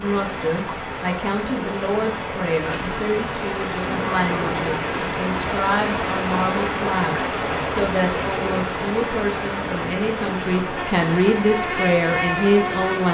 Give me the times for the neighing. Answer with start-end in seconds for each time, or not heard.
3.8-4.8.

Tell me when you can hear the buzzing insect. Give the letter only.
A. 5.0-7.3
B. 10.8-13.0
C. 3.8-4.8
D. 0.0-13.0
B.